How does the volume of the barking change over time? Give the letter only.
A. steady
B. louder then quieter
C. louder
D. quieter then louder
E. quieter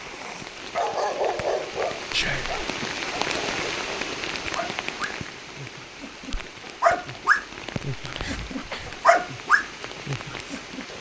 D.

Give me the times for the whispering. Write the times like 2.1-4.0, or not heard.
2.1-2.6, 8.0-9.0.